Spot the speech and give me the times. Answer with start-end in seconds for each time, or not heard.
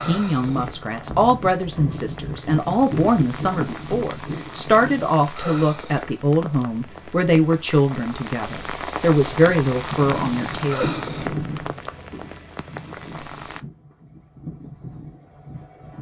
0.0-10.9.